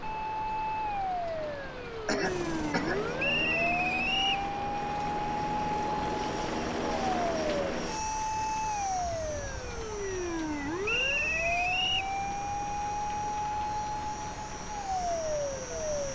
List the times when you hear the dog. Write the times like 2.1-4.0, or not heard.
not heard.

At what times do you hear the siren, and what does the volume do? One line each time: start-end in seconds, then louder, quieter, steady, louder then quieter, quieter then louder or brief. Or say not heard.
0.0-16.0 steady.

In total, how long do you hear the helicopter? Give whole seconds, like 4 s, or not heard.
14 s.